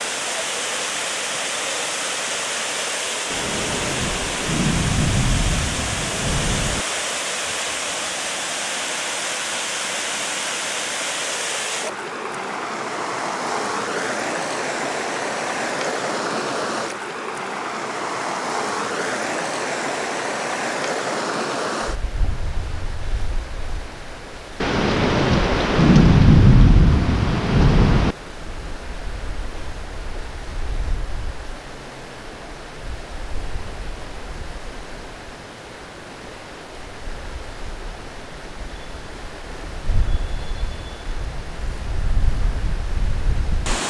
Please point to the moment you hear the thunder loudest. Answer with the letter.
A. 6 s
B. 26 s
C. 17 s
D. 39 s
B.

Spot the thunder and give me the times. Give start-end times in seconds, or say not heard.
3.3-6.8, 24.6-28.1.